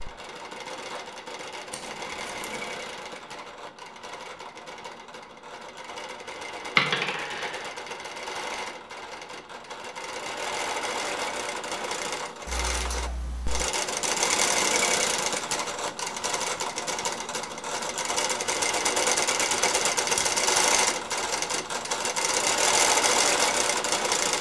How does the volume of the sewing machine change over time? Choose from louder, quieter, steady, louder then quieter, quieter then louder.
louder.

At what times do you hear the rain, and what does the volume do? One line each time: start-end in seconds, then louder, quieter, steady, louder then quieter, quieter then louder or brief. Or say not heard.
not heard.